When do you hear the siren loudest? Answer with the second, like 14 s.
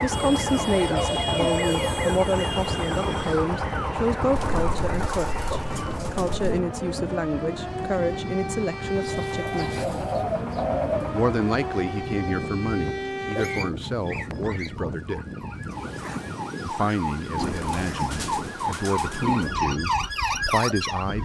20 s.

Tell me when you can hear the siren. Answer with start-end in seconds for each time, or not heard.
0.0-21.2.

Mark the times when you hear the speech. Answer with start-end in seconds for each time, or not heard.
0.0-9.8, 11.1-15.2, 16.6-21.2.